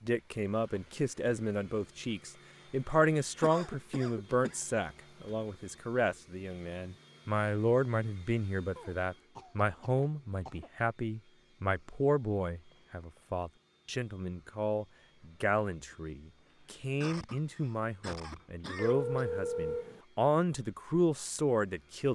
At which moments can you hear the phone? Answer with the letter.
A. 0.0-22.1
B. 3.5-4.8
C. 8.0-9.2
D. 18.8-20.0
D.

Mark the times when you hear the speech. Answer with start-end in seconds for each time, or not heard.
0.0-22.1.